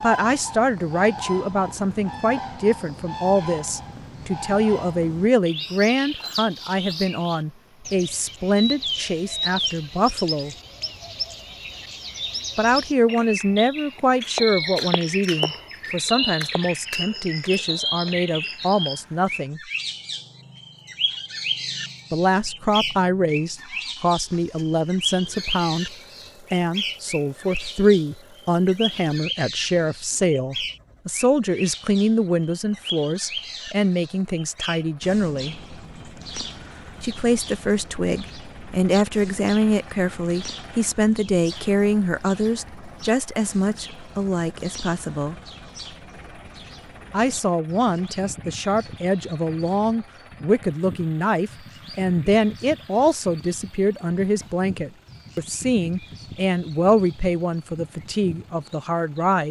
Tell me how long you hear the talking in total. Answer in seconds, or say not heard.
51 s.